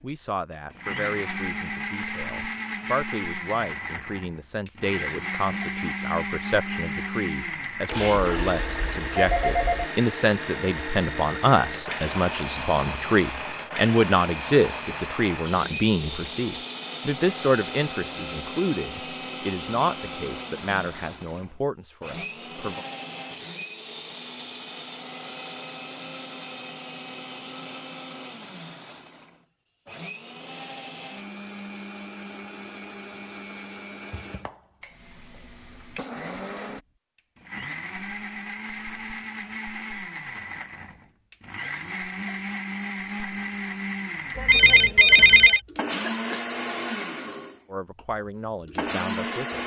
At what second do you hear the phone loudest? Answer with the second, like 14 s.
45 s.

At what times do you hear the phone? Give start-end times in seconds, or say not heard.
7.9-9.9, 44.4-45.6.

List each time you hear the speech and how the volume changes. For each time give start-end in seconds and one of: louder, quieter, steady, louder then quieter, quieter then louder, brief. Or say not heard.
0.0-22.9 louder then quieter
47.7-49.6 brief.